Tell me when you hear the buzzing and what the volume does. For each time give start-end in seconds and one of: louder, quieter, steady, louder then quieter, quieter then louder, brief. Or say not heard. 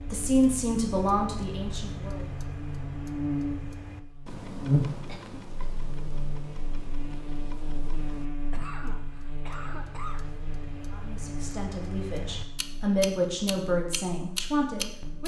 0.0-15.2 louder then quieter.